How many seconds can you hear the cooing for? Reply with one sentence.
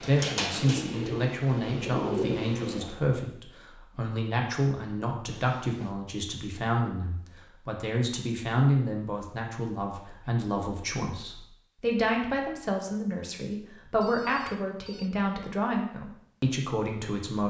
You can hear the cooing for 3 seconds altogether.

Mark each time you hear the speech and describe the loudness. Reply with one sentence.
The speech can be heard from 0.0 to 17.4 s, at a steady volume.